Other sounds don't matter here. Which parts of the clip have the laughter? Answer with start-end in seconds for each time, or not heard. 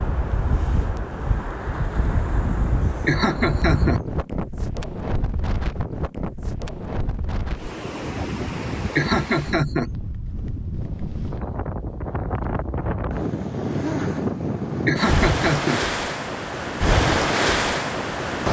3.0-4.0, 8.9-9.9, 14.8-15.8.